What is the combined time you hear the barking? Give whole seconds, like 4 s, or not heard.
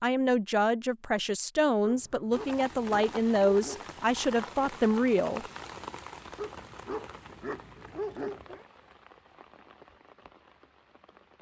4 s.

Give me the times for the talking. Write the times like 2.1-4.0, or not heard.
0.0-5.5.